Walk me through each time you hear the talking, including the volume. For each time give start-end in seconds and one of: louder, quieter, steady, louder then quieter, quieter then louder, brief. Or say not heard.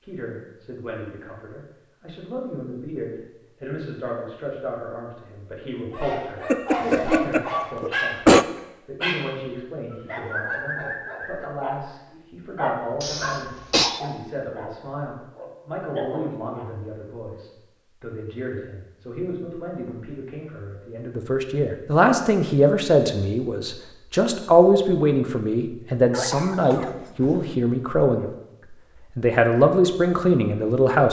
0.0-31.0 louder.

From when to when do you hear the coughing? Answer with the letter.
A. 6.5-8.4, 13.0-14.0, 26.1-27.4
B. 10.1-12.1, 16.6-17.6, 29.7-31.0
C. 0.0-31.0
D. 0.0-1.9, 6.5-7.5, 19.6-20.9
A.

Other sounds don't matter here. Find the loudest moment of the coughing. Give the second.
8 s.